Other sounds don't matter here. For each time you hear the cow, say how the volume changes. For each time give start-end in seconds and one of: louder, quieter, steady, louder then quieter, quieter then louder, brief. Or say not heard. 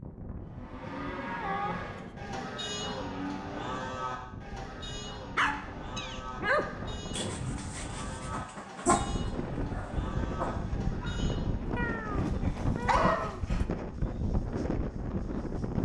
0.5-11.8 quieter.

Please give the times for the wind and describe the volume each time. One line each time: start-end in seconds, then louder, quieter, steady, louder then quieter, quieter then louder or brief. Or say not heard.
0.0-15.8 louder.